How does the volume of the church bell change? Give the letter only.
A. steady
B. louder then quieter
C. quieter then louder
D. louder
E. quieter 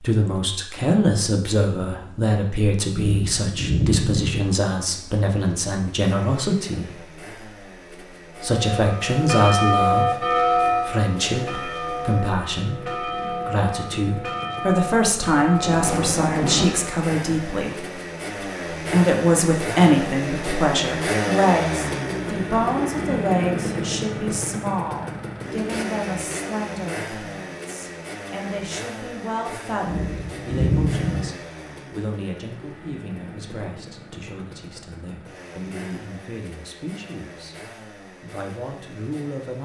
E.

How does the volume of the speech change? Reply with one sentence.
The loudness of the speech goes down.